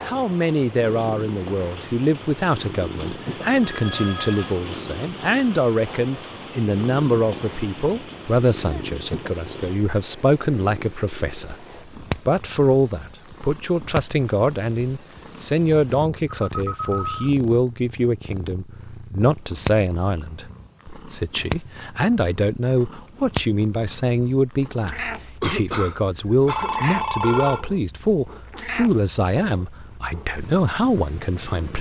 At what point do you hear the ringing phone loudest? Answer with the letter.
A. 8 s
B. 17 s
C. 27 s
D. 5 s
C.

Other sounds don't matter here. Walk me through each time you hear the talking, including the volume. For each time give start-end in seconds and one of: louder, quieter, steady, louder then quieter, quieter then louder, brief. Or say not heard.
0.0-31.7 steady.